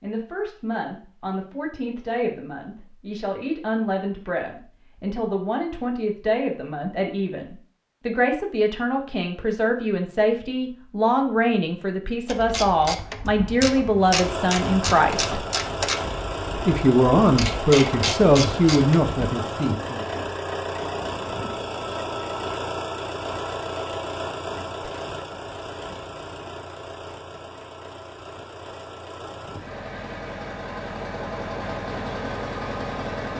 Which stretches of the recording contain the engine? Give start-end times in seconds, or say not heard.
13.9-33.3.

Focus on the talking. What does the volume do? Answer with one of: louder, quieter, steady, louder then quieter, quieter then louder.
louder.